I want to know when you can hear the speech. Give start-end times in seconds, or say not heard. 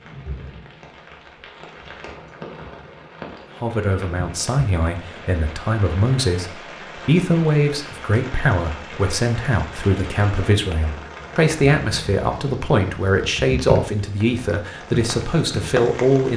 3.6-16.3.